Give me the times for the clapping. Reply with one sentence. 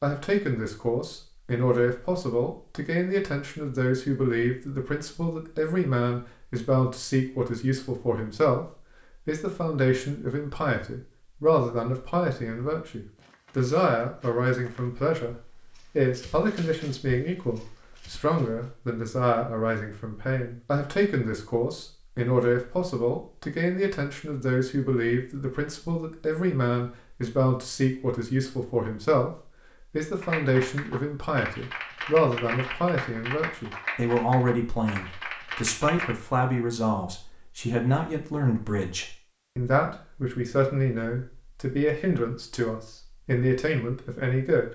You can hear the clapping from 30.2 to 36.1 s.